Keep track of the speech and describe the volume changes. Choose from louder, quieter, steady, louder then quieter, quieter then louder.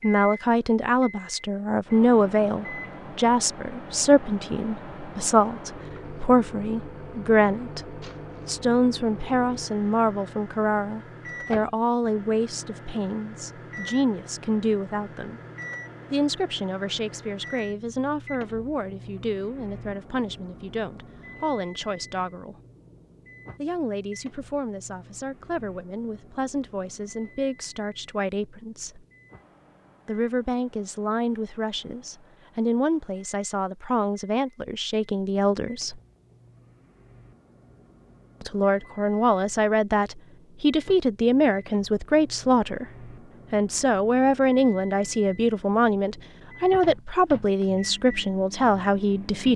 quieter then louder.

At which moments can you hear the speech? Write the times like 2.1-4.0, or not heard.
0.0-15.4, 16.1-22.6, 23.6-29.1, 30.1-36.0, 38.4-42.9, 43.5-49.5.